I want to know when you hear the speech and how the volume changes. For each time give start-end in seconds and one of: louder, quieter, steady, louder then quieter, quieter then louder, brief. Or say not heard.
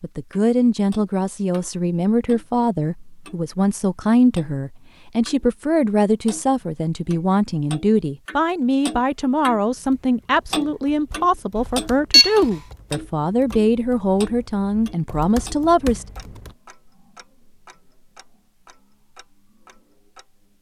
0.0-16.1 steady.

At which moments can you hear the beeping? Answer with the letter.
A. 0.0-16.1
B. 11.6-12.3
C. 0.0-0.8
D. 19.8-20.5
B.